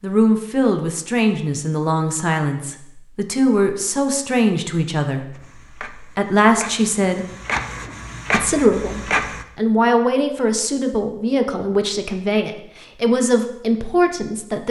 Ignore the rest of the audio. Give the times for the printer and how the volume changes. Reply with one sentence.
The printer can be heard from 5.3 to 9.4 s, getting louder then quieter.